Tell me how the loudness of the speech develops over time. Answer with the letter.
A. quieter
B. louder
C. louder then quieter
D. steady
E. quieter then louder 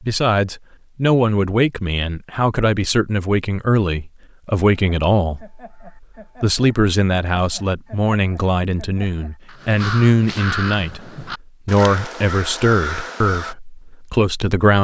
D.